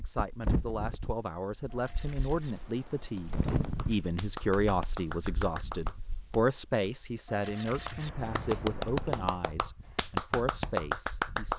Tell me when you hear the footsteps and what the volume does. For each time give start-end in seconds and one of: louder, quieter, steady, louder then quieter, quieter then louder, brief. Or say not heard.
not heard.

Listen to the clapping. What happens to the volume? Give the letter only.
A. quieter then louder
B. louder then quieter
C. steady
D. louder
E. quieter
D.